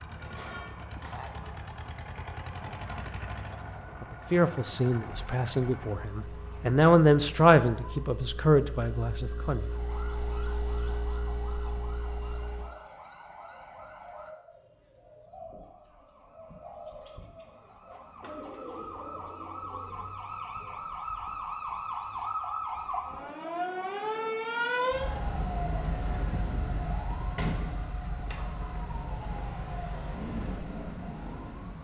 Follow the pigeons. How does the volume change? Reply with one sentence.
The loudness of the pigeons goes up.